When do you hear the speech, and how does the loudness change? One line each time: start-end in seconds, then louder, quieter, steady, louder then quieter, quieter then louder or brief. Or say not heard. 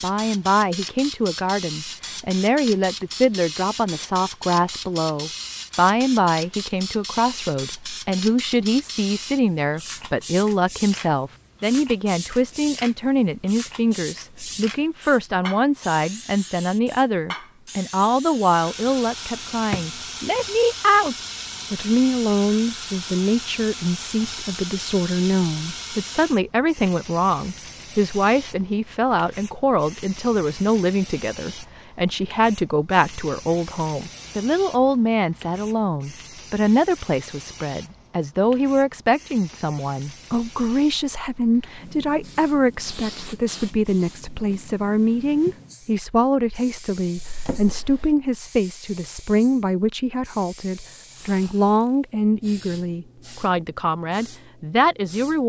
0.0-55.4 steady.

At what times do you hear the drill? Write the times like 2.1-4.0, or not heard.
not heard.